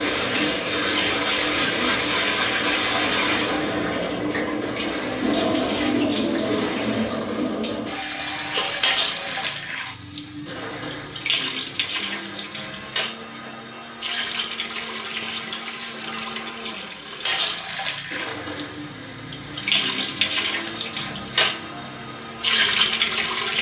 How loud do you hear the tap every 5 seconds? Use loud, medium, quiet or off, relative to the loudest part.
loud, loud, medium, medium, loud.